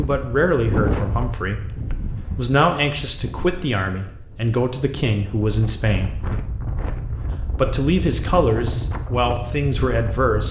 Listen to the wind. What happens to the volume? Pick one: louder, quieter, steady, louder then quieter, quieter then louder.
quieter then louder.